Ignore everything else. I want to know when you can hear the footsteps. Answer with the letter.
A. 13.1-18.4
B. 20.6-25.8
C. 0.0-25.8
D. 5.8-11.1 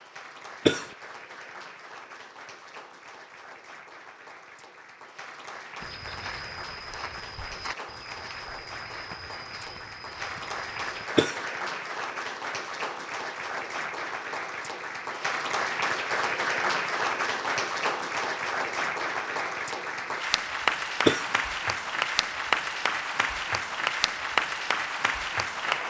D.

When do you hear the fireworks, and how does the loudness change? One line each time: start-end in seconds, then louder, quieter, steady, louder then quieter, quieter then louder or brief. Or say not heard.
not heard.